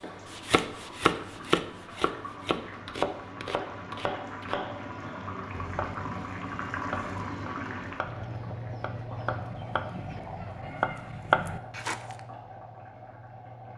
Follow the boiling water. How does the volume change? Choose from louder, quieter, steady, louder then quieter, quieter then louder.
louder then quieter.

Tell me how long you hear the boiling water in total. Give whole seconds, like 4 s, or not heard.
14 s.